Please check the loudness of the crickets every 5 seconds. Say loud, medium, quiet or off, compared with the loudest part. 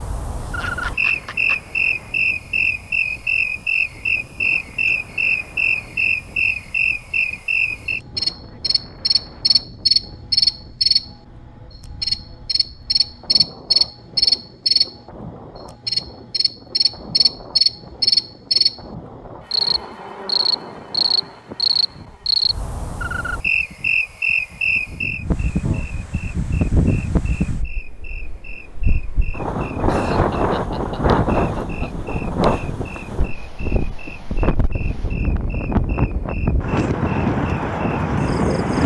loud, loud, loud, loud, loud, quiet, quiet, quiet.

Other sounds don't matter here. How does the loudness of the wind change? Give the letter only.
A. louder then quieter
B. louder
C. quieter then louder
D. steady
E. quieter
B.